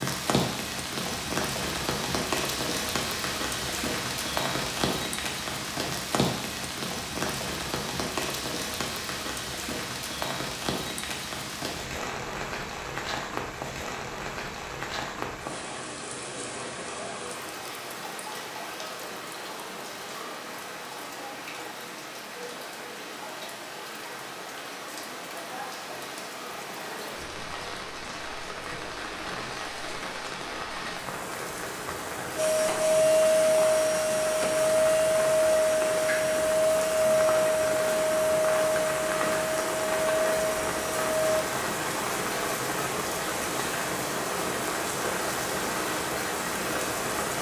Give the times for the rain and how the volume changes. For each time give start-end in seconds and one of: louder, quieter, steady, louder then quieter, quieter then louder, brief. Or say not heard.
0.0-47.3 quieter then louder.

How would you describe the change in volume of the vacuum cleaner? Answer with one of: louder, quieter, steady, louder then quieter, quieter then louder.
quieter.